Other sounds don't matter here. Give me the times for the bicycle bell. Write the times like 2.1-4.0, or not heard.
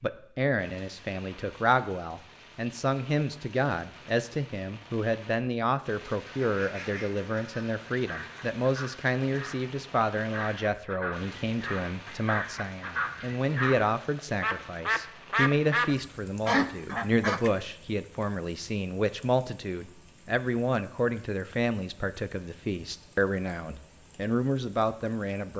not heard.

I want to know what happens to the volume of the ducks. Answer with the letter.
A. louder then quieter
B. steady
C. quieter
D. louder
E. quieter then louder
D.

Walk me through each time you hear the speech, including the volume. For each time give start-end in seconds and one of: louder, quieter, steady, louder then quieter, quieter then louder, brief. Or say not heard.
0.0-25.5 steady.